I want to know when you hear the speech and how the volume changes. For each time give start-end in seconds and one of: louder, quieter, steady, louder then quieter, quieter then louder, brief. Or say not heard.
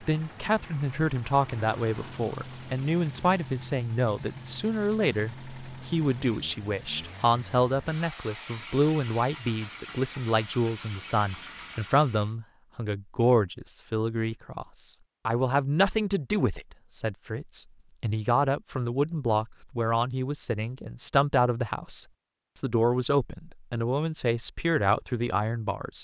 0.0-26.0 steady.